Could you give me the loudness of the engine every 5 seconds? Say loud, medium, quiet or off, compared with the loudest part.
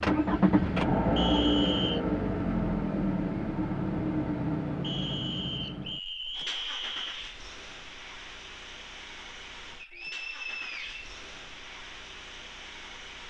loud, quiet, quiet.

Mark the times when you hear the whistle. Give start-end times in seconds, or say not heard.
1.1-2.0, 4.8-7.0, 9.8-11.1.